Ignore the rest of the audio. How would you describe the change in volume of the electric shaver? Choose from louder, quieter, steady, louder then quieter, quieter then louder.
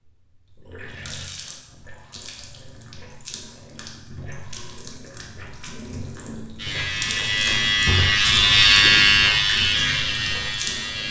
louder then quieter.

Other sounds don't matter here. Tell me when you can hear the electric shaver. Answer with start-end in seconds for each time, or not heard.
6.5-11.0.